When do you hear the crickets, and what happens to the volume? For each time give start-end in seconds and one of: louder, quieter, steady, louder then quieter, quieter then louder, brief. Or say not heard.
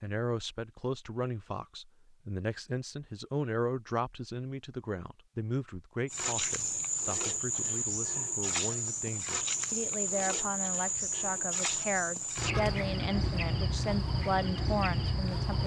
6.0-15.6 steady.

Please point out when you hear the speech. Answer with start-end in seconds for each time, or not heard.
0.0-15.6.